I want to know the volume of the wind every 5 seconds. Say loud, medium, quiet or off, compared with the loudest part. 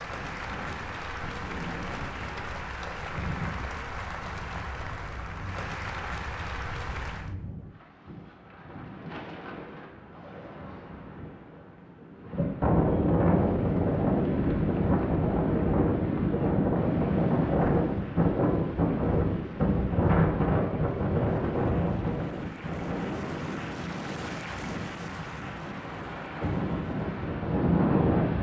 quiet, quiet, loud, loud, loud, loud.